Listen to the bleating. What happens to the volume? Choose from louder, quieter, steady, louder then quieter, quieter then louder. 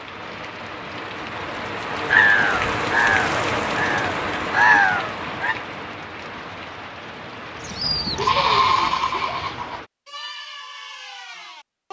quieter.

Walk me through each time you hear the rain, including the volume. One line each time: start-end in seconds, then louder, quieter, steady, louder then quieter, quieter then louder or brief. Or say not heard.
0.0-9.9 louder then quieter.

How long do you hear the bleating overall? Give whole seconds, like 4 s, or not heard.
4 s.